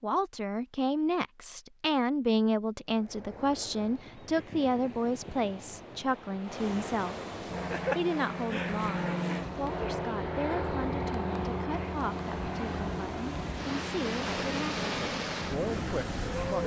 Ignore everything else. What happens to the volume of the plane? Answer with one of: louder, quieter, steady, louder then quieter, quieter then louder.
quieter.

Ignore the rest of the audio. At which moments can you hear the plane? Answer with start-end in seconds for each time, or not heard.
7.5-16.6.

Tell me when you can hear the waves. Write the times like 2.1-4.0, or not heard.
2.9-16.6.